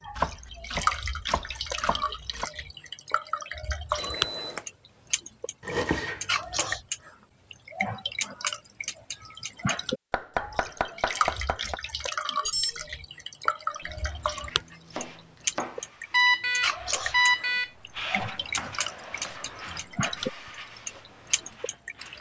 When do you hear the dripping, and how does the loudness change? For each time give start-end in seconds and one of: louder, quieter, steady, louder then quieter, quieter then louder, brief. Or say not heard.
0.0-22.1 steady.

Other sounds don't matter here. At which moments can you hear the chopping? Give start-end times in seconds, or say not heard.
0.1-2.5, 5.6-6.8, 10.1-11.8, 13.8-15.8, 17.9-20.2.